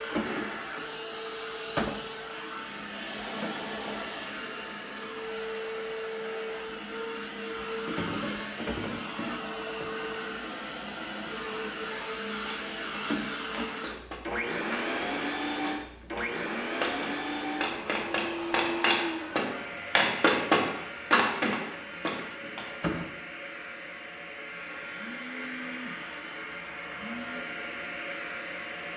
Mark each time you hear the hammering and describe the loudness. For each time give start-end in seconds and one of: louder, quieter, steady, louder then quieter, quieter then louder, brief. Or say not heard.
12.4-23.1 louder.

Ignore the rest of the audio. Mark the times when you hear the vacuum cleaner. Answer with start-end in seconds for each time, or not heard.
0.0-28.9.